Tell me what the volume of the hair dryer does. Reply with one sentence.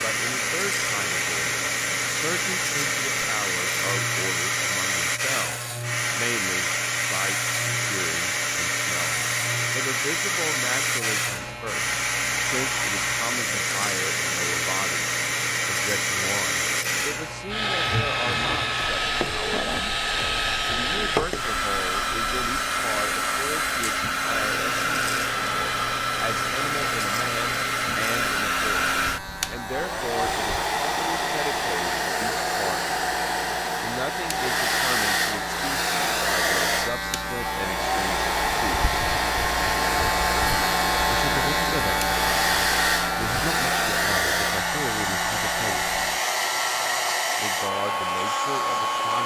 The volume of the hair dryer stays about the same.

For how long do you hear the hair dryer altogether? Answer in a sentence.
The hair dryer can be heard for 49 seconds in total.